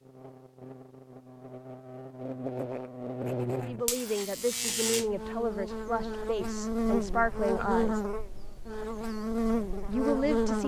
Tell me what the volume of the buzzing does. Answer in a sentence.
The loudness of the buzzing goes up.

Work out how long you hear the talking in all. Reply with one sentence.
You can hear the talking for 5 seconds altogether.